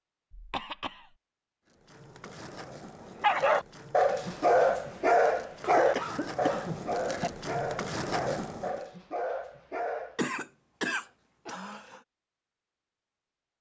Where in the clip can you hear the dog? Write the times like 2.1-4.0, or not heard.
3.2-10.2.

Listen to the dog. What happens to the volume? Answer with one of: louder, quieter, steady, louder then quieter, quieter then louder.
quieter.